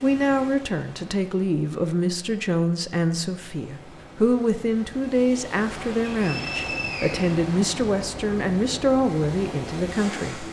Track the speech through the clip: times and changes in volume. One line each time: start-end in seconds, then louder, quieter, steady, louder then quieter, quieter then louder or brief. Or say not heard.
0.0-10.4 steady.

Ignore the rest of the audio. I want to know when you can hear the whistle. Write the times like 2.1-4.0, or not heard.
6.2-7.3.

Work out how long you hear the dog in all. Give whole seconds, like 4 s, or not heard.
not heard.